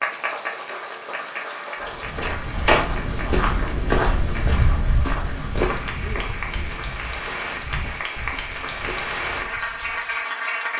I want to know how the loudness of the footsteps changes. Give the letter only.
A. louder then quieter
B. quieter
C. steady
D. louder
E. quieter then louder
B.